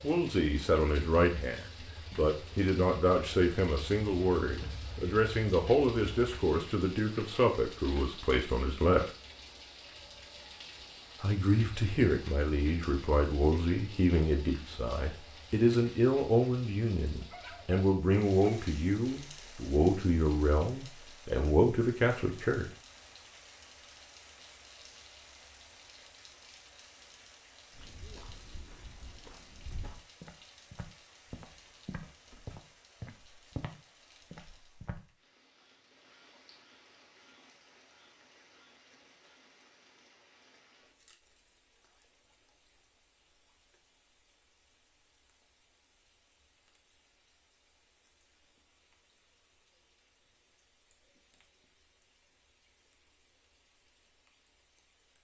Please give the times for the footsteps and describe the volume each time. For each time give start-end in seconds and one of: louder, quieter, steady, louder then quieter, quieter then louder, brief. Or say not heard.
27.7-35.0 louder.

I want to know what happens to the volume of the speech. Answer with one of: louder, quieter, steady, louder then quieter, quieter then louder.
steady.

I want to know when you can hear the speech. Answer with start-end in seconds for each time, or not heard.
0.0-9.1, 11.2-22.7.